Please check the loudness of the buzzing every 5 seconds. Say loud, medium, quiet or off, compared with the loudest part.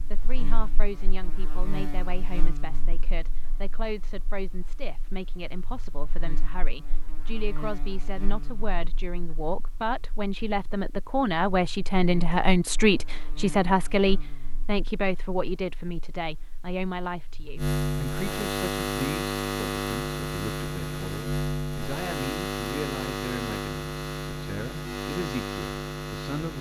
quiet, quiet, quiet, loud, loud, loud.